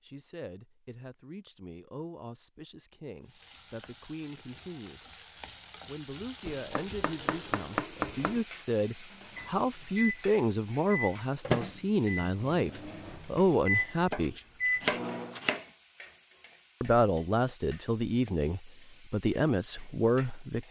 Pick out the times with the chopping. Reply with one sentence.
The chopping can be heard from 6.5 to 8.4 s and from 14.1 to 15.7 s.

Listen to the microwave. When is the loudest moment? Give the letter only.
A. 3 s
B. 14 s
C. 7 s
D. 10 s
B.